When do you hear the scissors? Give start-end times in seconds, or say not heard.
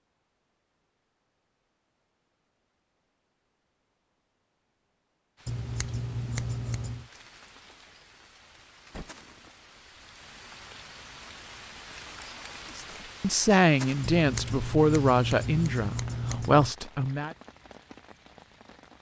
5.5-7.0, 14.0-16.8.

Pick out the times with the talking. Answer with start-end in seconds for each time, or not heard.
12.8-17.4.